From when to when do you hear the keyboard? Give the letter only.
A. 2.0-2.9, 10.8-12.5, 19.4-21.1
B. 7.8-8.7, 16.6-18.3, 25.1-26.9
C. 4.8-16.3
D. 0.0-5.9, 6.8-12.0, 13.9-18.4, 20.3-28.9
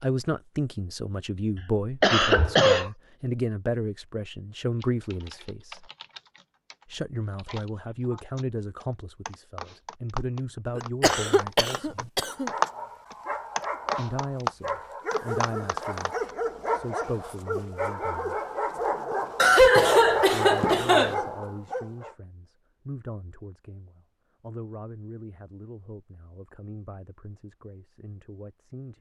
C.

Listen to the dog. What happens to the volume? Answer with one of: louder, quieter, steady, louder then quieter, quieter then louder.
louder.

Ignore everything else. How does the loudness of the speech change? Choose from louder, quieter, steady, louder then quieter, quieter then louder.
quieter.